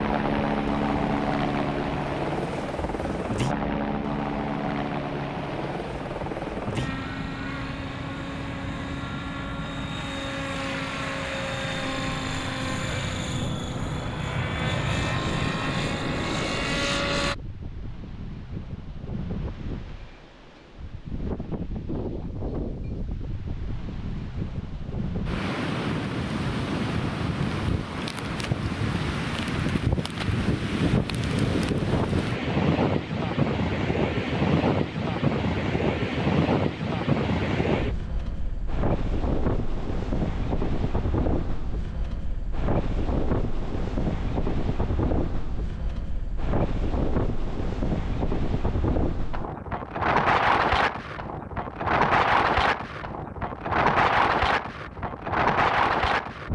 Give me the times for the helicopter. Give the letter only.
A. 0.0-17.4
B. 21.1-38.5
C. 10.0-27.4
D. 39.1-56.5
A.